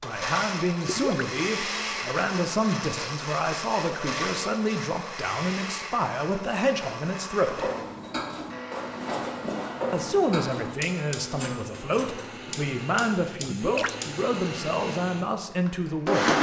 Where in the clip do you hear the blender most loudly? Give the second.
16 s.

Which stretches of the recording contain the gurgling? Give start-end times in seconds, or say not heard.
0.8-1.2, 13.4-13.9.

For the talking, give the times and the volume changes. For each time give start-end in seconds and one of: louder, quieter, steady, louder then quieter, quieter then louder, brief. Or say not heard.
0.0-7.7 steady
9.9-16.3 steady.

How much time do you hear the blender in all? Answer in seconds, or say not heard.
16 s.